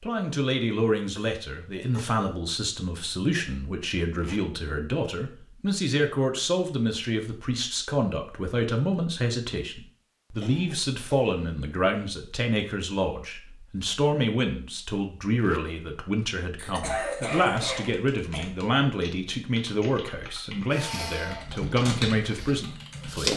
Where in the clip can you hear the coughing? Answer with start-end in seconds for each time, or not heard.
1.1-2.4, 10.4-11.6, 16.6-18.4.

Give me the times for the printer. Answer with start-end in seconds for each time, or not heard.
20.7-23.3.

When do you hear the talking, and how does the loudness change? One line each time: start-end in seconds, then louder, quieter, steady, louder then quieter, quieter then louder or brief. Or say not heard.
0.0-23.3 steady.